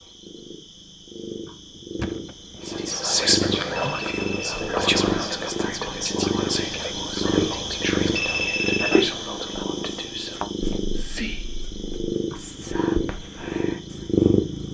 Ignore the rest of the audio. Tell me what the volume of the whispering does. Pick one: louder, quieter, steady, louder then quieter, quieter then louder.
quieter.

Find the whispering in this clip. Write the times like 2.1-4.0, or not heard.
2.6-14.0.